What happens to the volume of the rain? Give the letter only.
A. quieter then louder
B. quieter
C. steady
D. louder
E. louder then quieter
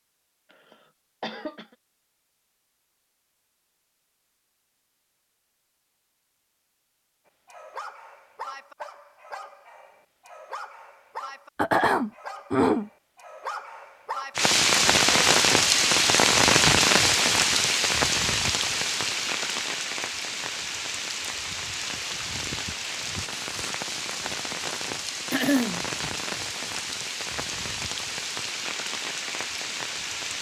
B.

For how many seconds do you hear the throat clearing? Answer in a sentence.
You can hear the throat clearing for 3 seconds altogether.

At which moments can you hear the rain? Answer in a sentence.
The rain can be heard from 14.3 to 30.3 s.